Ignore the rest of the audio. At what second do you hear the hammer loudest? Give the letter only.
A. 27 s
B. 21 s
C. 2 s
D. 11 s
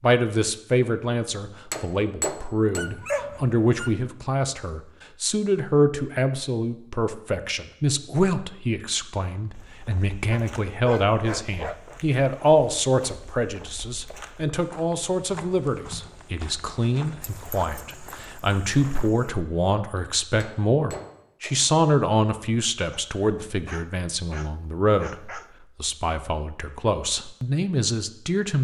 C.